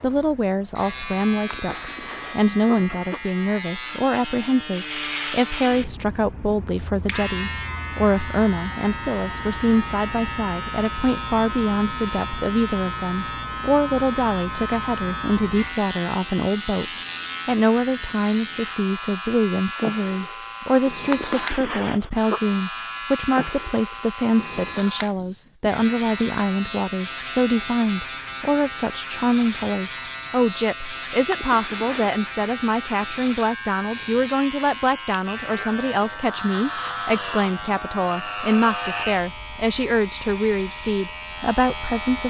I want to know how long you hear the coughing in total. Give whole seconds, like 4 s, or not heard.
4 s.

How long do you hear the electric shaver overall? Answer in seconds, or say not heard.
42 s.